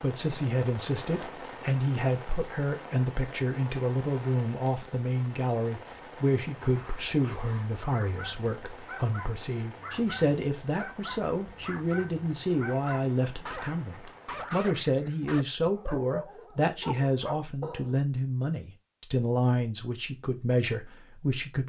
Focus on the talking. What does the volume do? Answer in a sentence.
The loudness of the talking stays about the same.